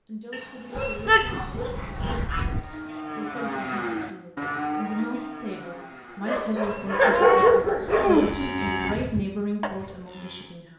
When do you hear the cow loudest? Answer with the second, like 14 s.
7 s.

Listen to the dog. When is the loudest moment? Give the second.
7 s.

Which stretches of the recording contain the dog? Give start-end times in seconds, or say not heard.
0.3-2.2, 6.2-8.2.